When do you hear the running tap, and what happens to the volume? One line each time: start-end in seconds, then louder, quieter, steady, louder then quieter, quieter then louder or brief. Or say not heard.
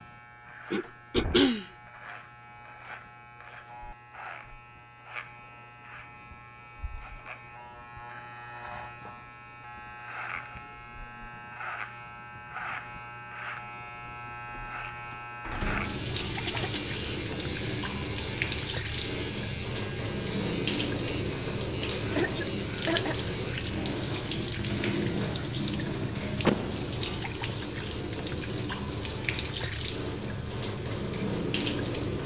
15.6-32.2 steady.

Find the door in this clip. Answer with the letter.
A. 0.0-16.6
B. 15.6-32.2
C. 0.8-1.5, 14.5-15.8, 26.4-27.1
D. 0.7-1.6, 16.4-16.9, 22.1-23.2
C.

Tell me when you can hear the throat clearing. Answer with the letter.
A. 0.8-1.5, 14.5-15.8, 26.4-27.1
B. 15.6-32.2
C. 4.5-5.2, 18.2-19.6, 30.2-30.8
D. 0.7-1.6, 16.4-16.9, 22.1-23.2
D.